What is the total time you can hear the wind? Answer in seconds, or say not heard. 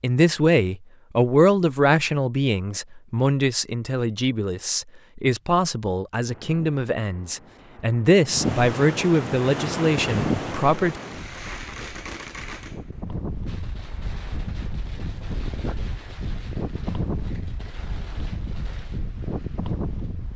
14 s.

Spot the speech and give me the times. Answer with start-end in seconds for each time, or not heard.
0.0-11.0.